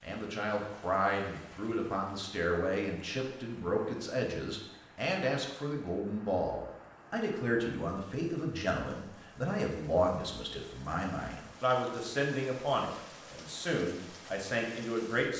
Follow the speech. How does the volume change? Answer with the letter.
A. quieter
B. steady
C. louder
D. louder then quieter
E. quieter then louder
B.